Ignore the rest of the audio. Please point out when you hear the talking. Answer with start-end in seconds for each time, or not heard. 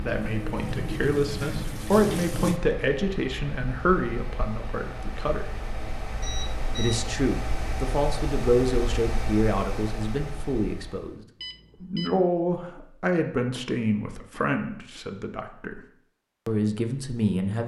0.0-5.5, 6.8-11.2, 11.8-15.8, 16.4-17.6.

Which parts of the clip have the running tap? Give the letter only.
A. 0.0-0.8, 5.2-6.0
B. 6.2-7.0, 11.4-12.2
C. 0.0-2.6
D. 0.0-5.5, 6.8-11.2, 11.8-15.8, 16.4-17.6
C.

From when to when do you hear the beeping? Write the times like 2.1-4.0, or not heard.
6.2-7.0, 11.4-12.2.